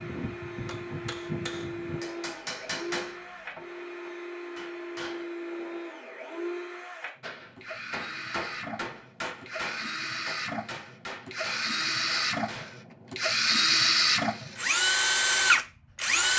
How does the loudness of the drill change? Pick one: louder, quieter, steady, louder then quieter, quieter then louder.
louder.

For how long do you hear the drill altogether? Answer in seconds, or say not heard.
16 s.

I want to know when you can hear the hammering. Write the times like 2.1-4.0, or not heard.
0.0-5.2, 7.2-12.8.